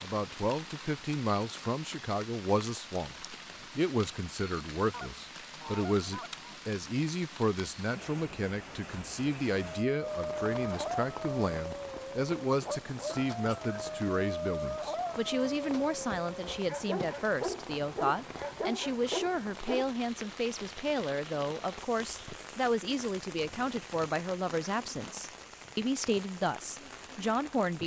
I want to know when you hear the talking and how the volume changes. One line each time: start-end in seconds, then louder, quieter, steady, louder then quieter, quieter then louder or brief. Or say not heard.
0.0-27.8 steady.